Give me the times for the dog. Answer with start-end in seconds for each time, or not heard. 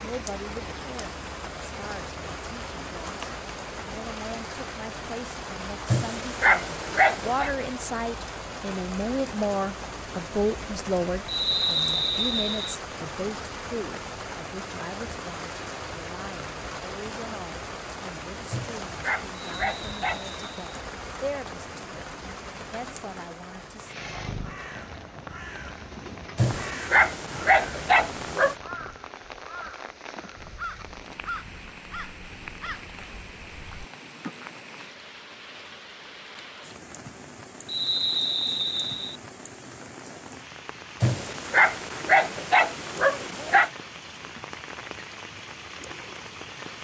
5.8-7.5, 18.5-20.4, 26.4-28.6, 41.0-43.7.